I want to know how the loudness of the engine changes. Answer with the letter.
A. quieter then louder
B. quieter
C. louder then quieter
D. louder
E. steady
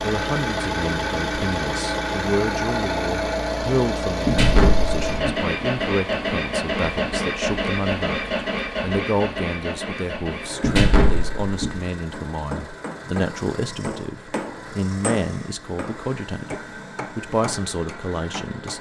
B.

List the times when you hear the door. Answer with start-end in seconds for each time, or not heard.
4.2-5.5, 10.6-11.8.